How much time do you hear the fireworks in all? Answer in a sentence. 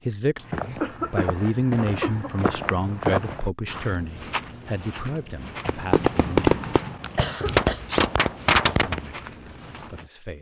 You can hear the fireworks for 3 seconds altogether.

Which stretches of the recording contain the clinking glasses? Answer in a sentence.
The clinking glasses can't be heard in this clip.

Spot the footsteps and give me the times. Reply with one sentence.
You can hear the footsteps from 0.3 to 10.1 s.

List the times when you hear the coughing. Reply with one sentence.
The coughing can be heard from 0.3 to 2.4 s and from 6.6 to 7.8 s.